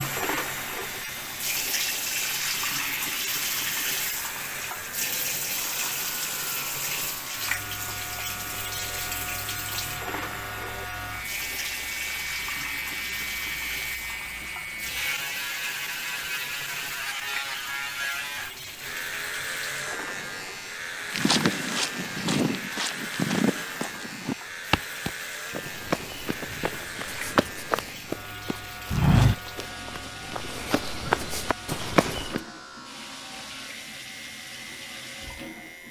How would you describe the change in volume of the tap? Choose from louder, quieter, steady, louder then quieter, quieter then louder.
quieter.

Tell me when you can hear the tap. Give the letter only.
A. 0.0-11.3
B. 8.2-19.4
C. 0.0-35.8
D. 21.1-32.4
C.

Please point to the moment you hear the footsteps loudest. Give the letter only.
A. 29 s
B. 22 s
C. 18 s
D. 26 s
A.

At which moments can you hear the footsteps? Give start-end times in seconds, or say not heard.
21.1-32.4.